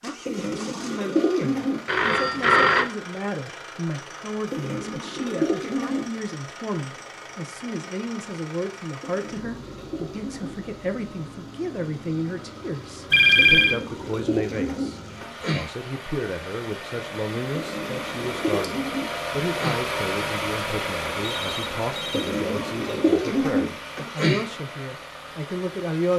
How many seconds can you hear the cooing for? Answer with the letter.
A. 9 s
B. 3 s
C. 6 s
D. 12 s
D.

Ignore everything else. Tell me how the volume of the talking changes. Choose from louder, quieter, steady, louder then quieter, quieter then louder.
steady.